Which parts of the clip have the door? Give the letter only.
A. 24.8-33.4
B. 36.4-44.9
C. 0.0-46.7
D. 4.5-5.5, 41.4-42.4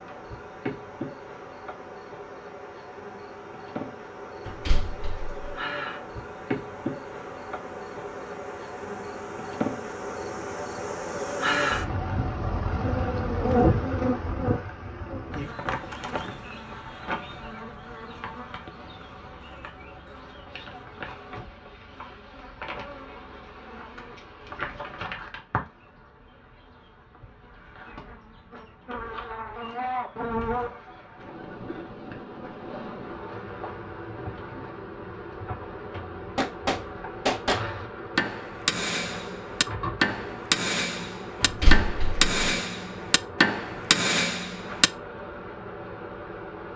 D.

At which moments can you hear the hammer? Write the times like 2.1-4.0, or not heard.
36.4-44.9.